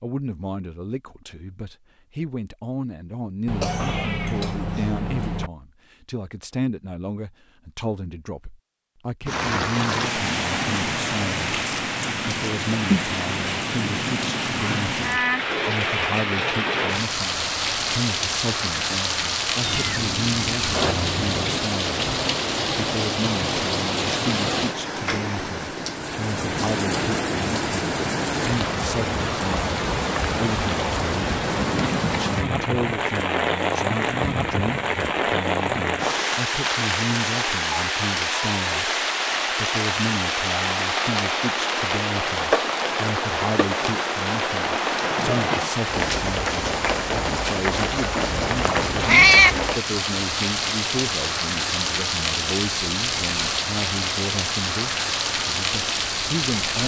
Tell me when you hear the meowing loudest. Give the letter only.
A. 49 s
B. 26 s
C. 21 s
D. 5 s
A.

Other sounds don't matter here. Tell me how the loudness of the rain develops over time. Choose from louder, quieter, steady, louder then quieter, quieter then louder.
steady.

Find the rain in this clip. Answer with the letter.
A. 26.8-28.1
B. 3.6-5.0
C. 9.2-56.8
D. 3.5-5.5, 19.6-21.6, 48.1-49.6
C.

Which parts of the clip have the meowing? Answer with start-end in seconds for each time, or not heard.
3.5-5.5, 19.6-21.6, 48.1-49.6.